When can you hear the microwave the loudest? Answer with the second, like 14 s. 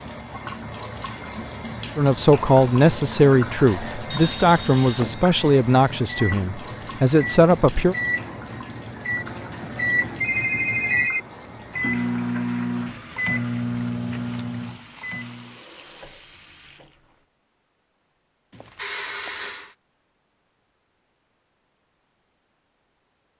12 s.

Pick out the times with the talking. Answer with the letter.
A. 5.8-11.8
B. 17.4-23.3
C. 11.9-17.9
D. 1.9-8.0
D.